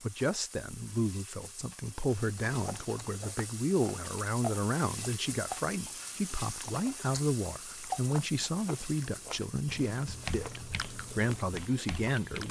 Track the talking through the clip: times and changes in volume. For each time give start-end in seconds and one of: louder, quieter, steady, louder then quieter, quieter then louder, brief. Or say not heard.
0.0-12.4 steady.